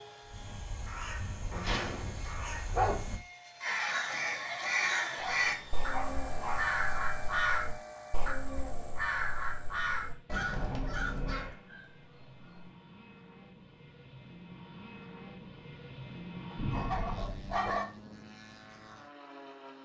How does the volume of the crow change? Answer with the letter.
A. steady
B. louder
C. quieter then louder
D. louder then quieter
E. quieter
B.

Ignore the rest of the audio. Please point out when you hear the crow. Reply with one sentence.
The crow can be heard from 0.2 to 11.6 s.